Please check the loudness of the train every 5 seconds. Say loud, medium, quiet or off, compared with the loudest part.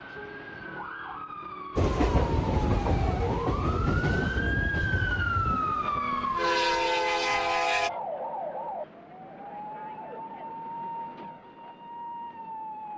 loud, loud, off.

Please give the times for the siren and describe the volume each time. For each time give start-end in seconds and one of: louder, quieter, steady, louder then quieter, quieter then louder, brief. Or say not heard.
0.0-12.9 louder then quieter.